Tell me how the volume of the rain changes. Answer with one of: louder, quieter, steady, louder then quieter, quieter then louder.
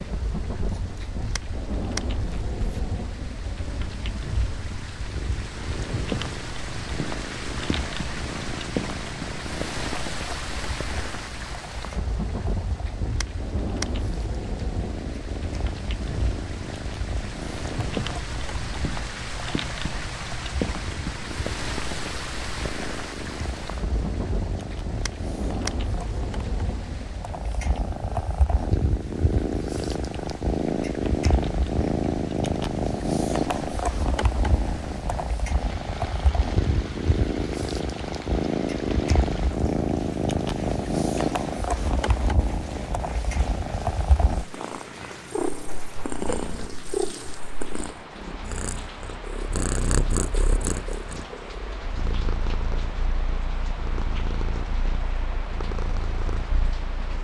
quieter.